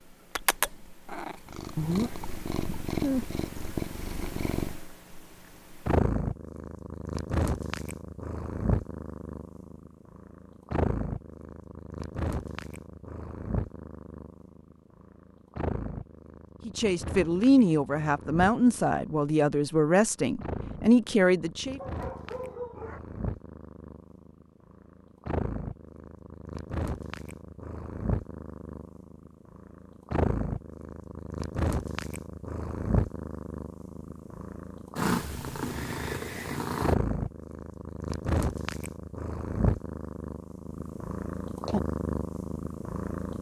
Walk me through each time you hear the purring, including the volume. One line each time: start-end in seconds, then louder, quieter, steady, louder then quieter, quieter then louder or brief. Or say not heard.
0.1-43.3 quieter then louder.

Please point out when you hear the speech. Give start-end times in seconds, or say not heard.
16.6-21.8.